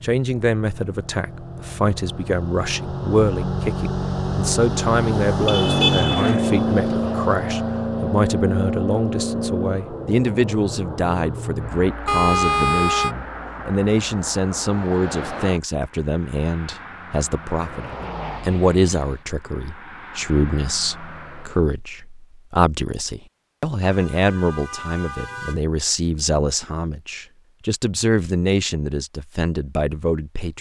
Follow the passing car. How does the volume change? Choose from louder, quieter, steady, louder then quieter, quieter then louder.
louder then quieter.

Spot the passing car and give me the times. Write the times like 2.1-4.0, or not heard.
0.0-21.6.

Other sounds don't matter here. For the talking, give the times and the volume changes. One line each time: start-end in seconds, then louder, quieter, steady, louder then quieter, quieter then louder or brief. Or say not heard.
0.0-30.5 steady.